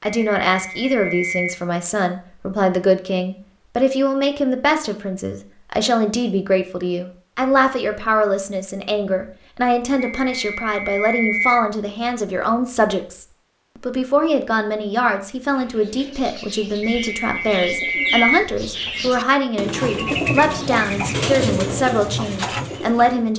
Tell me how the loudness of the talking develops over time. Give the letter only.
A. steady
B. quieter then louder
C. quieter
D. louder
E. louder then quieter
A.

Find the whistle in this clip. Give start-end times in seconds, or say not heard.
0.1-1.6, 9.9-11.7, 16.8-18.5.